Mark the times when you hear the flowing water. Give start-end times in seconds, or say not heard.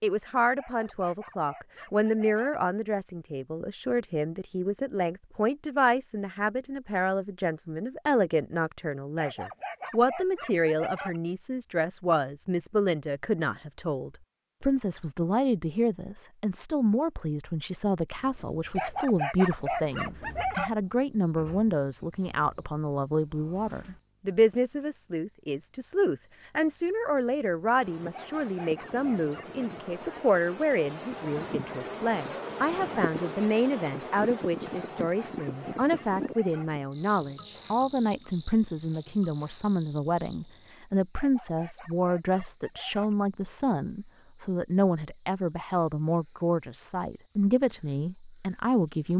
not heard.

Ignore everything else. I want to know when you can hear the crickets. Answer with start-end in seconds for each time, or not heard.
18.1-49.1.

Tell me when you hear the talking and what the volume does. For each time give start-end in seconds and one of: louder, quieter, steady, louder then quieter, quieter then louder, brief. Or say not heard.
0.0-49.1 steady.